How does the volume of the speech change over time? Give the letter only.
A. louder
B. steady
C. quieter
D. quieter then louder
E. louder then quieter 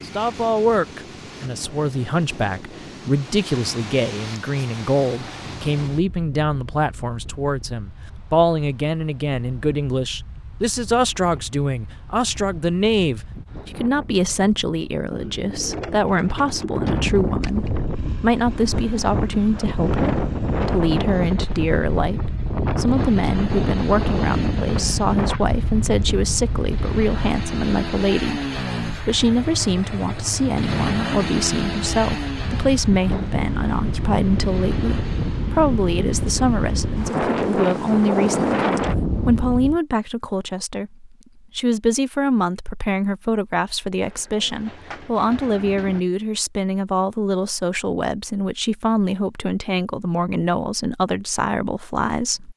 B.